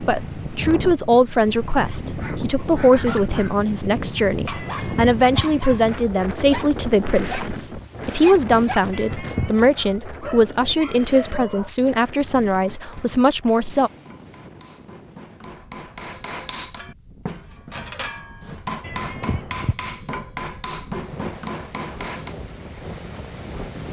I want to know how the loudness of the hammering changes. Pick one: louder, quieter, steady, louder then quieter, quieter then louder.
louder.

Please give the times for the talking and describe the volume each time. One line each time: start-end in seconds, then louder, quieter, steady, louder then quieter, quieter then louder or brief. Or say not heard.
0.0-13.9 steady.